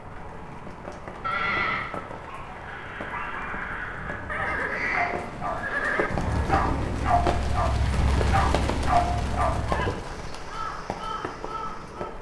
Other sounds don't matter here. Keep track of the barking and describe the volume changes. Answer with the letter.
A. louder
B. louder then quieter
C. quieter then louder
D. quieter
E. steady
A.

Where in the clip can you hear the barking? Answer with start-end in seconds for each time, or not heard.
1.3-9.7.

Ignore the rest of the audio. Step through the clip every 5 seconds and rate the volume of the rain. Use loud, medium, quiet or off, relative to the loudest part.
medium, loud, medium.